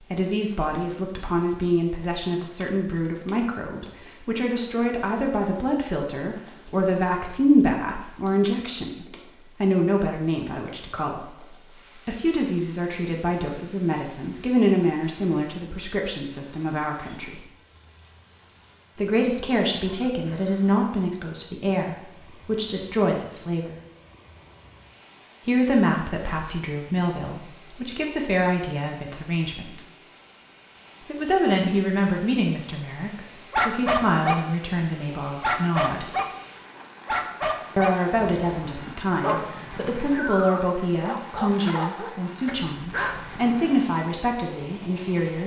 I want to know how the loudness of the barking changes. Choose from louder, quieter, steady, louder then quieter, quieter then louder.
quieter.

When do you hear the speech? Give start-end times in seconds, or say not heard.
0.1-17.4, 18.9-23.8, 25.4-29.8, 31.1-36.0, 37.8-45.4.